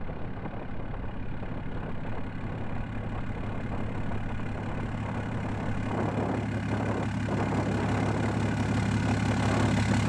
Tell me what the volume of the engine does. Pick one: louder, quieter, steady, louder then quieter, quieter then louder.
louder.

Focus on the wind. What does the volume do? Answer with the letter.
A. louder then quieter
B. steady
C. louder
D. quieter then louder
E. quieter
C.